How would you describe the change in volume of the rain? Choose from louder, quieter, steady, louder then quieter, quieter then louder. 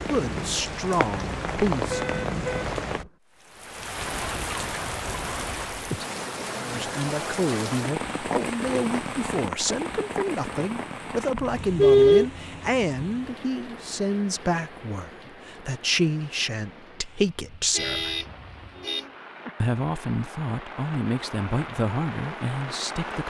quieter then louder.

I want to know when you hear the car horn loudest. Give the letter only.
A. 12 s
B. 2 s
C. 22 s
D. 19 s
A.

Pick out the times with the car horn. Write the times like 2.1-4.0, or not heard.
1.2-3.1, 11.3-12.2, 17.7-19.1.